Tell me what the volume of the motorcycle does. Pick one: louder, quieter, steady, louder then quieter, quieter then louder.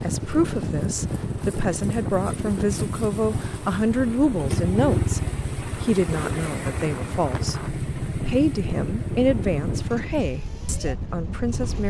louder then quieter.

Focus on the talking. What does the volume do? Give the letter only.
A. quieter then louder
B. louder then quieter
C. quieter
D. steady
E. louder
D.